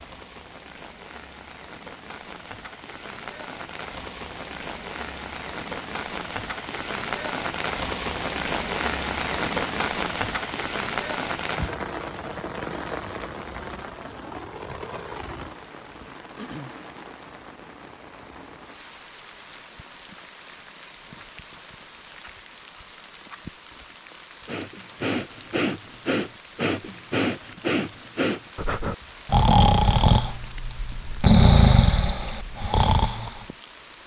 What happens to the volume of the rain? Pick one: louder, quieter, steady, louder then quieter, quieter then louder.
louder then quieter.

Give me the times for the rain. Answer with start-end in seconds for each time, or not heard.
0.0-34.0.